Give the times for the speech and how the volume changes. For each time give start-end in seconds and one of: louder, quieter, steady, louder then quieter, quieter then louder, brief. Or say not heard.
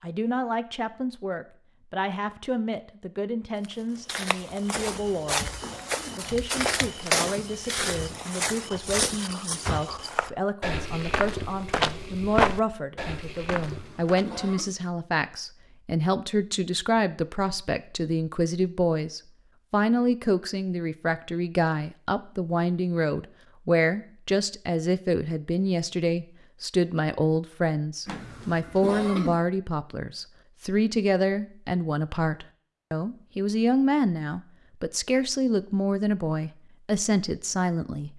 0.0-38.1 louder.